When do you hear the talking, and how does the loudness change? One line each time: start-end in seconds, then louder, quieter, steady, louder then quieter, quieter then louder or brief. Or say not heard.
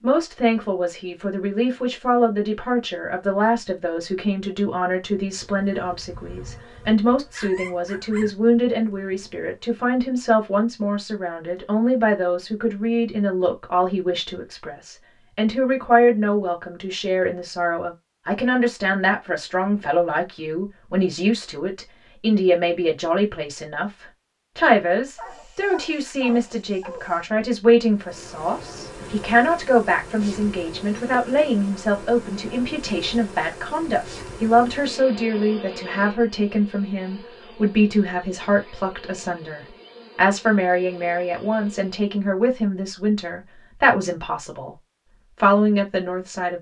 0.0-23.9 steady
24.6-44.8 steady
45.4-46.5 brief.